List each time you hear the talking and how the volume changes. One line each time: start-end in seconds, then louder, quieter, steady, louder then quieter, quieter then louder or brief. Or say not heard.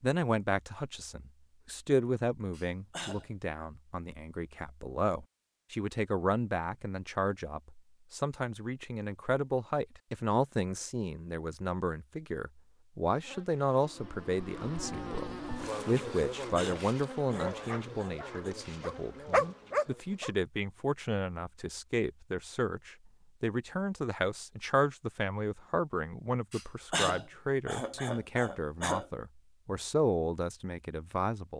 0.0-31.5 steady.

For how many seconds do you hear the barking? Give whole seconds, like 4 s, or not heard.
3 s.